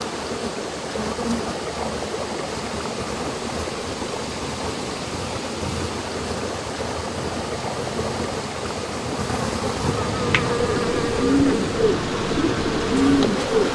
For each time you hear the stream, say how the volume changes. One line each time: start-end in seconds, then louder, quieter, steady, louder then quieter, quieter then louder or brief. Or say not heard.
0.0-13.7 steady.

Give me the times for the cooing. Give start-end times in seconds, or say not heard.
10.2-13.7.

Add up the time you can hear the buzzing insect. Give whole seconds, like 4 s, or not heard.
14 s.